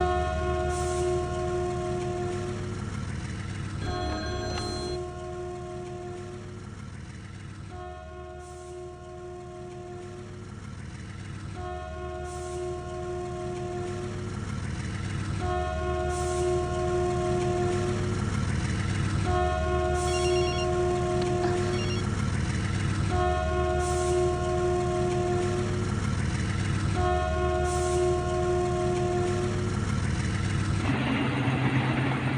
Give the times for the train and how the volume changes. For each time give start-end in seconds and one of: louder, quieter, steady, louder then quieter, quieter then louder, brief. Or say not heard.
0.0-32.3 quieter then louder.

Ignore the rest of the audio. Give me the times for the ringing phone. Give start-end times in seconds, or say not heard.
3.8-5.0, 20.1-22.1.